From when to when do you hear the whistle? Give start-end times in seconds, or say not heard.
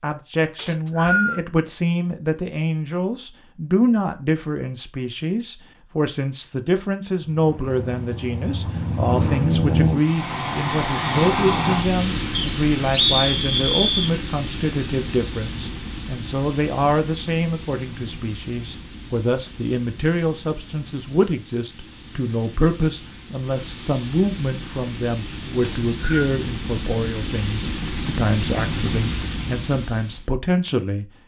0.6-1.4, 12.3-14.2, 25.6-26.3.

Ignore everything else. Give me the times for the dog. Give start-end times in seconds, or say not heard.
not heard.